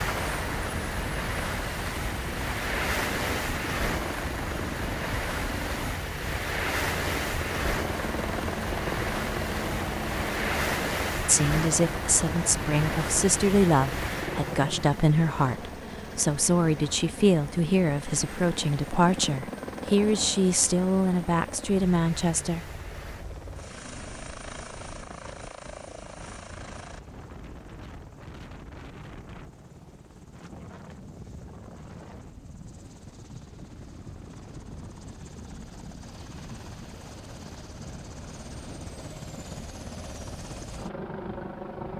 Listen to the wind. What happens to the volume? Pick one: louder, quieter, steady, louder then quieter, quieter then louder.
quieter.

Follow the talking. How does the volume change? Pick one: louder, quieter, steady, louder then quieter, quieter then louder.
steady.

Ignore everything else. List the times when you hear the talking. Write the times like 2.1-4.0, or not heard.
11.2-22.6.